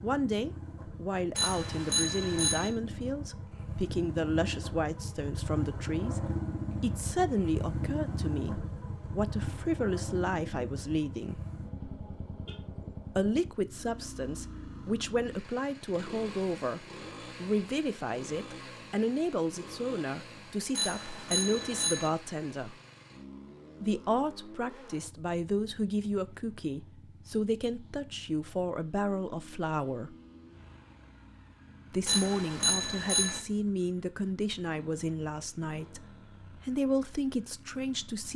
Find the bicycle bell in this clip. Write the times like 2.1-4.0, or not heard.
1.4-2.7, 20.8-22.1, 32.0-33.4.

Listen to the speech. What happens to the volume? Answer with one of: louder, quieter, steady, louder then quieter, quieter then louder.
steady.